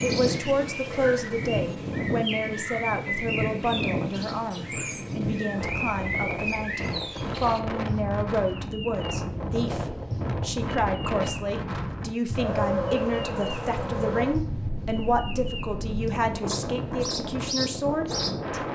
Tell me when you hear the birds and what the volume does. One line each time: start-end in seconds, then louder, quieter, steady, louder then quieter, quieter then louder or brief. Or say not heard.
0.0-18.6 steady.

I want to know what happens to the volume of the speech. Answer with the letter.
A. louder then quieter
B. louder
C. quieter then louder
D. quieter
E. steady
E.